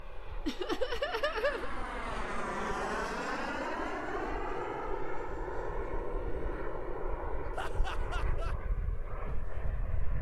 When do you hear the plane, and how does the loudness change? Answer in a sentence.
You can hear the plane from 0.0 to 10.1 s, getting louder then quieter.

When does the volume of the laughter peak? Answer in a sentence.
The volume of the laughter peaks at 1 second.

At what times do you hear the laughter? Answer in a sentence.
The laughter can be heard from 0.5 to 1.8 s and from 7.5 to 8.6 s.